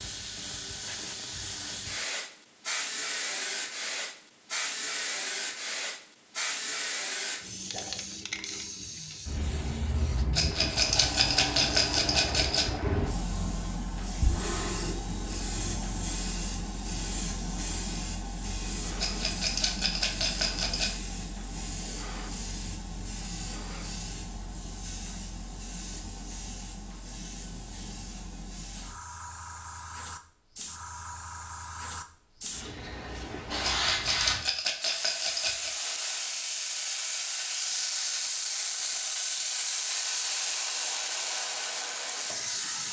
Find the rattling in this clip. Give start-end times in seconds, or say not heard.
10.3-12.7, 18.9-20.9, 33.6-35.8.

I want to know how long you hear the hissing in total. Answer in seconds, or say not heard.
43 s.